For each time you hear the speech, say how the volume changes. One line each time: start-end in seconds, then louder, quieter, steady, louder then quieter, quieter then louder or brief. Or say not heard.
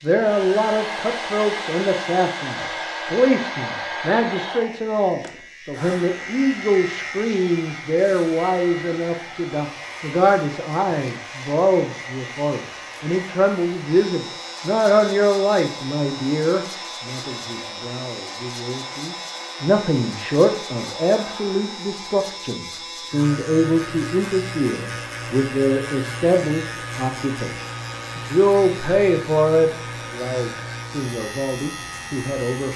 0.0-32.7 steady.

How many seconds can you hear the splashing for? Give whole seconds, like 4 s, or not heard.
not heard.